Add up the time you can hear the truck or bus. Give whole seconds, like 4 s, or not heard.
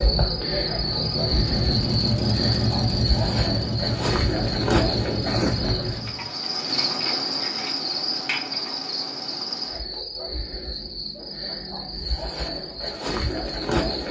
6 s.